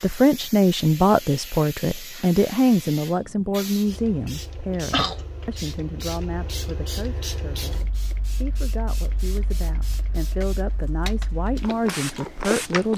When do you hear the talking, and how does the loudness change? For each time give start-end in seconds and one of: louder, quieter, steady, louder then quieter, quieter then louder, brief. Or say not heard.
0.0-12.9 quieter then louder.